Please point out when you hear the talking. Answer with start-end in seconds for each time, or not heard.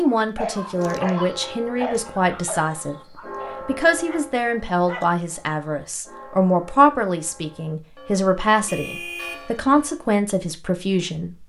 0.0-11.4.